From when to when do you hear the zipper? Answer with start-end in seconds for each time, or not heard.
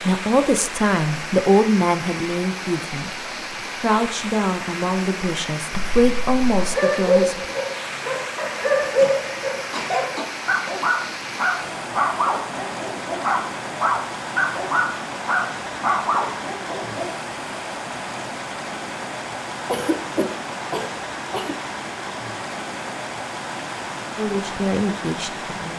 not heard.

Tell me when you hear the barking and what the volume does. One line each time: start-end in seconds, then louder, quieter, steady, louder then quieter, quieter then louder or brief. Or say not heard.
6.5-17.1 steady.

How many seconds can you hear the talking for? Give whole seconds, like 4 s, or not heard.
9 s.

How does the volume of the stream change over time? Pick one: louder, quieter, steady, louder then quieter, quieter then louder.
steady.